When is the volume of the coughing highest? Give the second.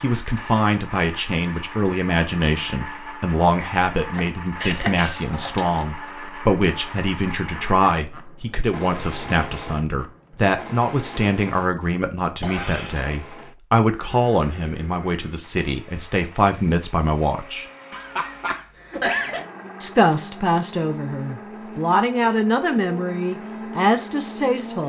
19 s.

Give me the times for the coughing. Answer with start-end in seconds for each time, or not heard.
4.6-5.7, 12.4-13.1, 17.9-19.4.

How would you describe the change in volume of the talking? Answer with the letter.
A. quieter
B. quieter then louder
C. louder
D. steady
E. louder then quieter
D.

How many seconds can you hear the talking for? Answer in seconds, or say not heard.
23 s.